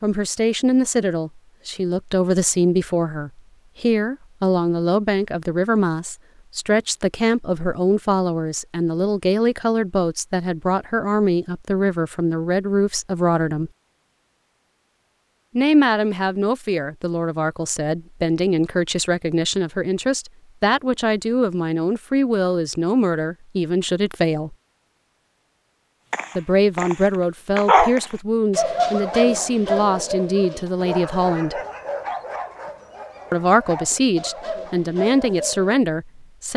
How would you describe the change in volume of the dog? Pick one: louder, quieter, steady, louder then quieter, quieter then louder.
quieter.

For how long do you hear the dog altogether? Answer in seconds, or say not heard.
10 s.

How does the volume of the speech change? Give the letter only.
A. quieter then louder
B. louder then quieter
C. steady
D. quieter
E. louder
C.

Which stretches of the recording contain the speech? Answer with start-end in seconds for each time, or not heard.
0.0-13.7, 15.6-24.6, 26.4-31.6, 33.3-36.5.